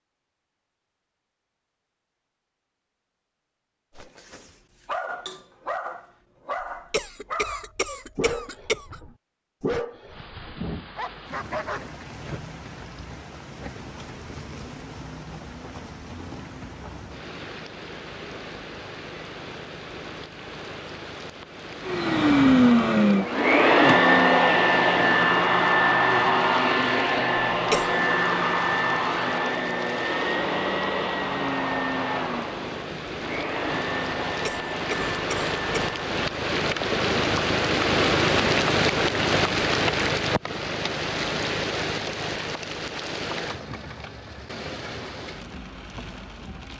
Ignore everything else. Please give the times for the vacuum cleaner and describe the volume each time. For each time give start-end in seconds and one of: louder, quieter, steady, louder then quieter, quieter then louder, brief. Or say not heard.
21.8-36.2 quieter.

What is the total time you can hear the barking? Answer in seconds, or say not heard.
8 s.